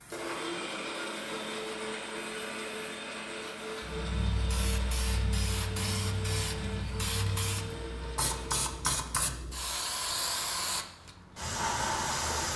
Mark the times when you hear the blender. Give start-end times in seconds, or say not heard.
0.1-8.9.